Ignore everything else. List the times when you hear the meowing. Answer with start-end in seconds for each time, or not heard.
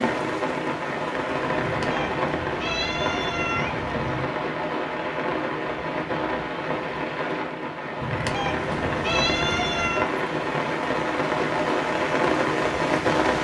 1.6-4.3, 8.0-10.1.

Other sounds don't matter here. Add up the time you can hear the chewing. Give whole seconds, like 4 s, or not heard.
not heard.